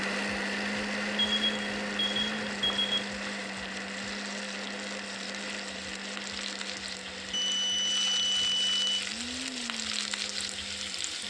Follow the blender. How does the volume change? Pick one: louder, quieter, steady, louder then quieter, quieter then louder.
quieter.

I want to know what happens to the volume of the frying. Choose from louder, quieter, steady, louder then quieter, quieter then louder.
louder.